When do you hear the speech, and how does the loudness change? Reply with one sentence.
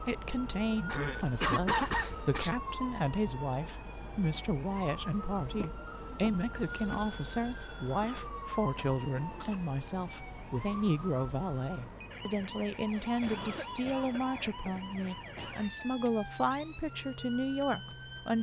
You can hear the speech from 0.0 to 18.3 s, at a steady volume.